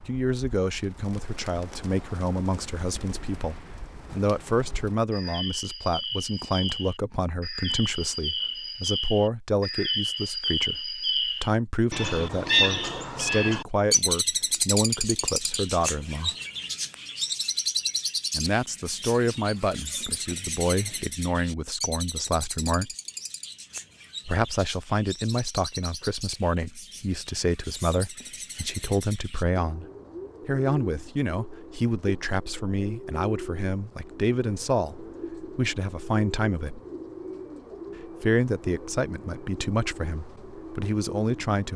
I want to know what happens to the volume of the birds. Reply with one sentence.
The volume of the birds goes up, then down.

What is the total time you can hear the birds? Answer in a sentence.
You can hear the birds for 42 seconds altogether.